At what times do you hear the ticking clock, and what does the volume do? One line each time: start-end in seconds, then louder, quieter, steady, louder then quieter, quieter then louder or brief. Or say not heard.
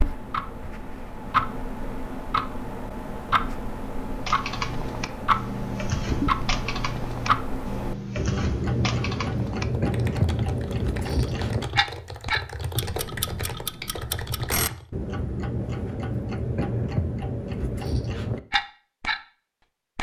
0.0-19.2 steady.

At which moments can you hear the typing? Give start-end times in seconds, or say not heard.
4.0-14.8.